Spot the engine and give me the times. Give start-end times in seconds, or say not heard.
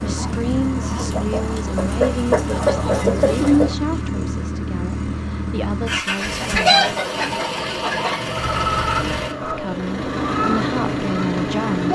0.0-11.9.